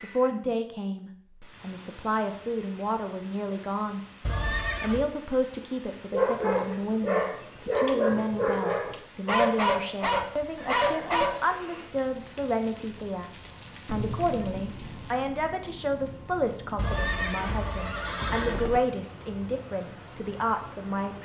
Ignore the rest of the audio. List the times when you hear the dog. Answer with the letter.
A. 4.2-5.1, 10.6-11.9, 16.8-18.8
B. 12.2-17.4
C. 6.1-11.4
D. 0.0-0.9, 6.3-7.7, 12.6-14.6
C.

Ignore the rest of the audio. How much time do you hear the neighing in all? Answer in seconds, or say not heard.
4 s.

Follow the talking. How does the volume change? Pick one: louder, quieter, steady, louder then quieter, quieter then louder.
steady.